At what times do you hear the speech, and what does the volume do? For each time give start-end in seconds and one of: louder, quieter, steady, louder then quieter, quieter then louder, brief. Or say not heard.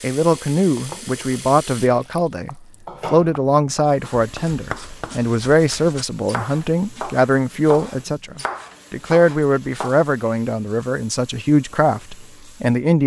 0.0-13.0 steady.